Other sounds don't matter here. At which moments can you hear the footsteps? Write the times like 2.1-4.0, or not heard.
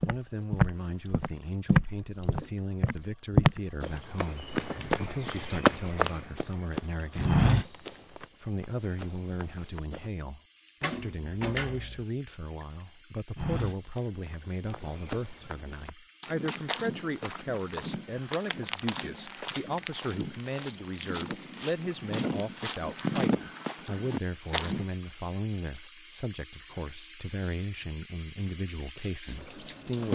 0.0-10.1, 13.3-24.9.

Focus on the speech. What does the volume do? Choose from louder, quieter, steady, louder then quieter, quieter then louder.
steady.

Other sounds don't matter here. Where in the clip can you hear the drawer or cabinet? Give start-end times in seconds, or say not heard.
10.8-12.1.